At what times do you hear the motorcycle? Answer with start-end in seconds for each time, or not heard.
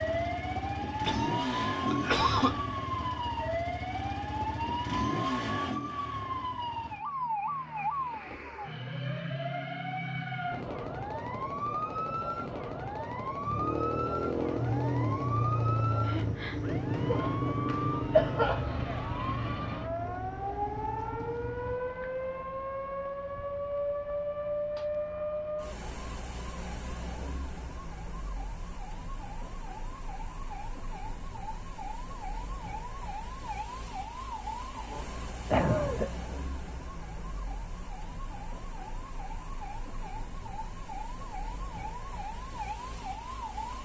0.0-7.0, 13.4-21.8.